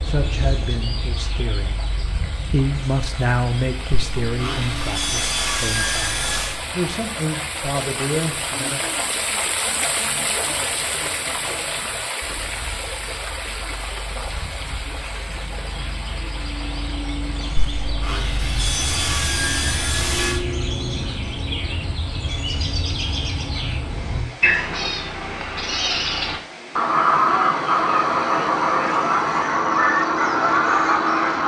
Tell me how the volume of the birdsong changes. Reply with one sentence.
The volume of the birdsong goes down, then up.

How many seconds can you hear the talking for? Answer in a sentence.
The talking can be heard for 9 seconds in total.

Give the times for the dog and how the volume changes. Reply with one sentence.
The dog can't be heard in this clip.